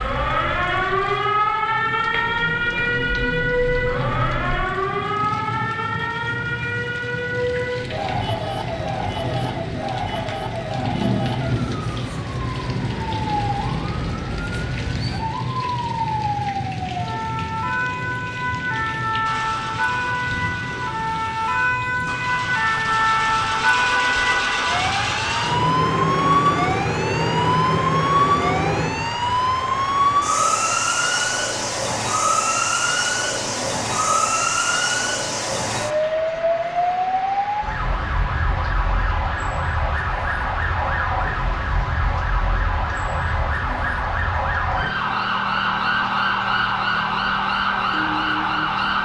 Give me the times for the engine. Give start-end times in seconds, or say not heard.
0.1-4.6, 19.2-28.9.